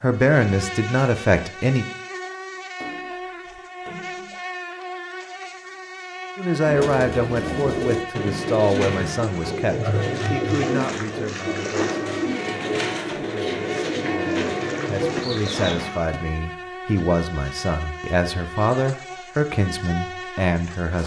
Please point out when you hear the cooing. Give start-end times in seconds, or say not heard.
6.7-16.2.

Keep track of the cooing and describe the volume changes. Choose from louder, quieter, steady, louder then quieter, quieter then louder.
steady.